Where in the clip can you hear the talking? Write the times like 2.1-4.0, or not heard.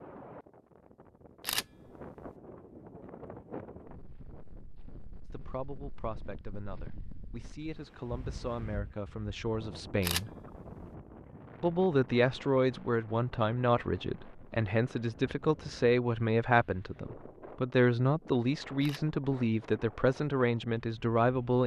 5.3-10.3, 11.6-21.6.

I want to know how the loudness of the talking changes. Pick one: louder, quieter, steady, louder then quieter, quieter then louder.
louder.